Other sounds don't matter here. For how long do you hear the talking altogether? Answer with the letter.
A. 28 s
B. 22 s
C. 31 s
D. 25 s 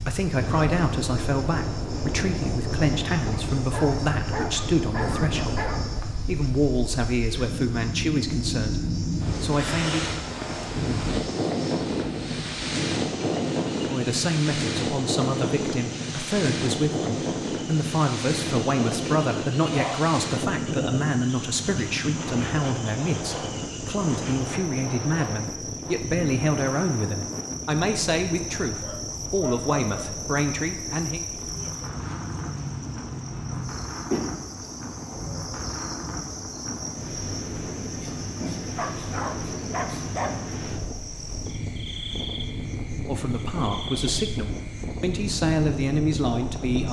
C.